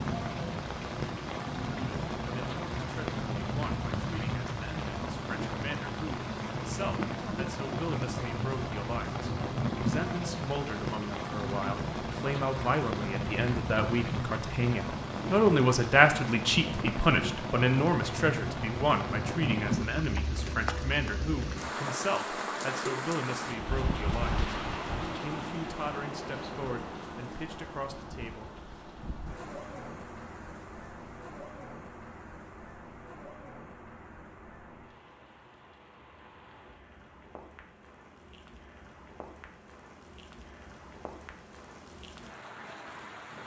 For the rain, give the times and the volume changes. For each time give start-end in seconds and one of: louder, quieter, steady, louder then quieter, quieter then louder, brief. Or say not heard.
0.0-43.4 quieter.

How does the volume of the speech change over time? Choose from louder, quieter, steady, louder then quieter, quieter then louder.
louder then quieter.